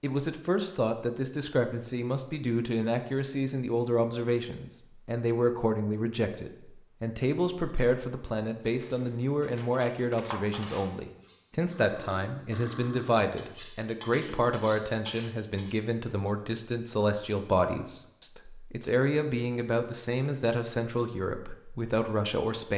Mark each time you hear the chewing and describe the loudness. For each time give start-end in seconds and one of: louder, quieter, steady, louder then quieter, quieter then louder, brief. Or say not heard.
not heard.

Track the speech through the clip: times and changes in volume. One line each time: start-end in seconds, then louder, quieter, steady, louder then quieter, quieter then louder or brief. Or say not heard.
0.0-22.7 steady.